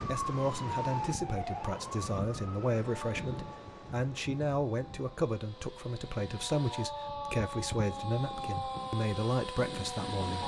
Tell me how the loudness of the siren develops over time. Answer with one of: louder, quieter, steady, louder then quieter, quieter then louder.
quieter then louder.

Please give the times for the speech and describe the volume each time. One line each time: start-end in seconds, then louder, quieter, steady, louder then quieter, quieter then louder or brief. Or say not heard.
0.0-10.4 steady.